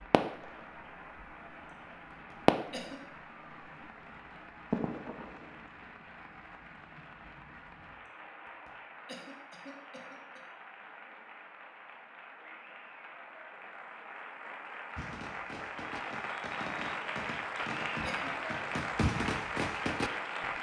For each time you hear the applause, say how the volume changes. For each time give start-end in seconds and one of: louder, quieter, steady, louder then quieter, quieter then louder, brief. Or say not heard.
0.0-20.5 louder.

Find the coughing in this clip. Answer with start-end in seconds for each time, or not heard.
2.1-3.0, 8.4-10.4, 17.4-18.4.